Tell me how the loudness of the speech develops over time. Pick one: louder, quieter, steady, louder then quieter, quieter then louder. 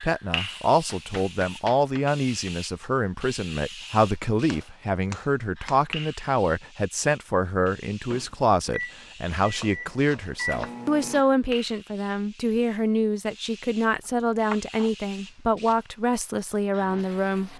steady.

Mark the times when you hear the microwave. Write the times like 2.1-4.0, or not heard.
8.1-11.2.